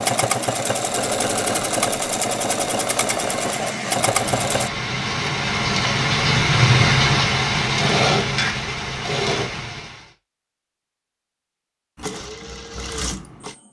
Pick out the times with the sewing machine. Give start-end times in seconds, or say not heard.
0.0-4.7, 11.9-13.6.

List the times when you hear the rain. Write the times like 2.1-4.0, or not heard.
0.0-10.1.